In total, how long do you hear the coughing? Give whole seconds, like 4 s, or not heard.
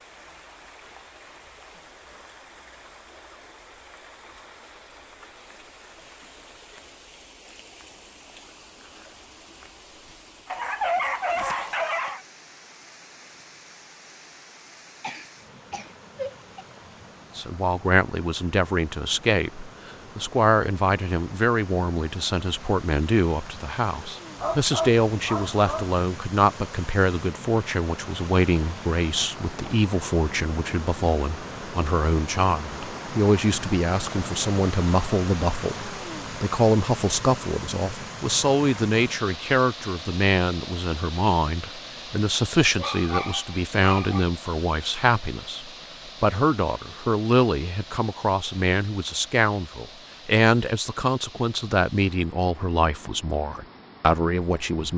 2 s.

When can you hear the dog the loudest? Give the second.
11 s.